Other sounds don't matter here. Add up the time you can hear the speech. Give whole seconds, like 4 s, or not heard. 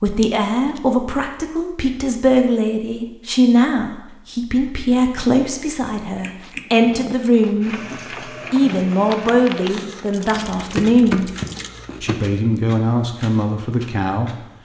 13 s.